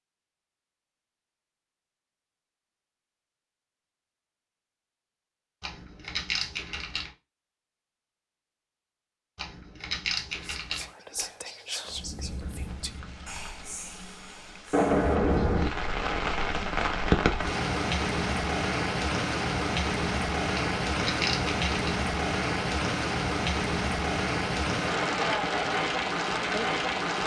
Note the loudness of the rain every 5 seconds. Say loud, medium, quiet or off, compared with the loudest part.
off, off, medium, loud, loud, loud.